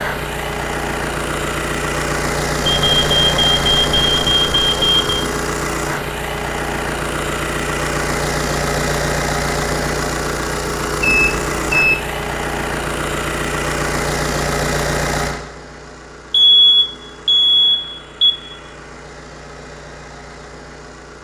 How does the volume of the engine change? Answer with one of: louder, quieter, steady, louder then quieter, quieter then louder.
quieter.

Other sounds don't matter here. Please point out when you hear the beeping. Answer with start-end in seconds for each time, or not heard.
2.6-5.2, 11.0-11.9, 16.3-18.4.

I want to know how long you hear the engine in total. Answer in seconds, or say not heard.
21 s.